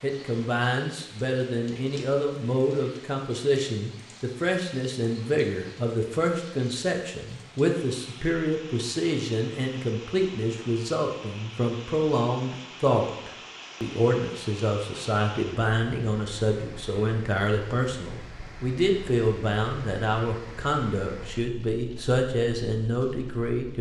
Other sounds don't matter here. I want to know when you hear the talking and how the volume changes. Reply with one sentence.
You can hear the talking from 0.0 to 23.7 s, at a steady volume.